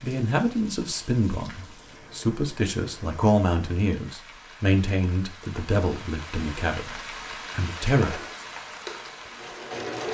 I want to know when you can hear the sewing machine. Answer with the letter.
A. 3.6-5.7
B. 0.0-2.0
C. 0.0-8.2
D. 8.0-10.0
D.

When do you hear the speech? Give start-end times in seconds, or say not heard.
0.0-8.2.